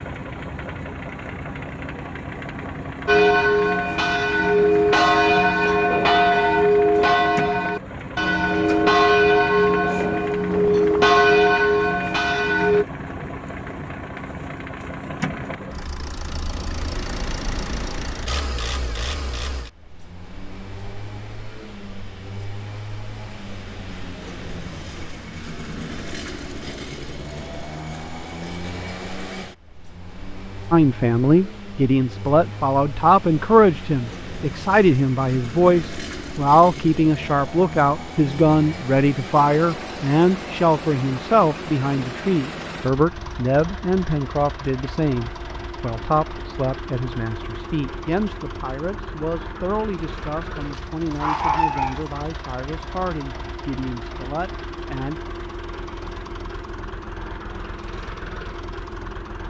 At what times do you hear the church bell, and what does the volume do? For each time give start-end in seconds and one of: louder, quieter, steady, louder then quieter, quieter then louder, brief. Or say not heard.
3.0-12.8 steady.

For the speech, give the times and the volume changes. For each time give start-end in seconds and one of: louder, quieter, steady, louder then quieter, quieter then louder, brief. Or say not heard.
30.7-55.2 quieter.